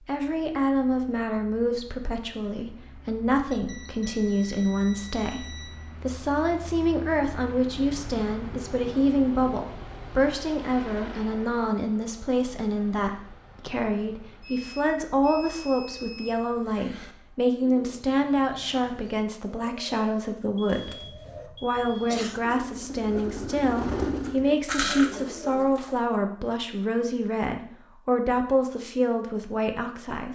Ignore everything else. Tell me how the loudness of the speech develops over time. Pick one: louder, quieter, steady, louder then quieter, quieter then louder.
steady.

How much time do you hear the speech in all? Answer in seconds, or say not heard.
30 s.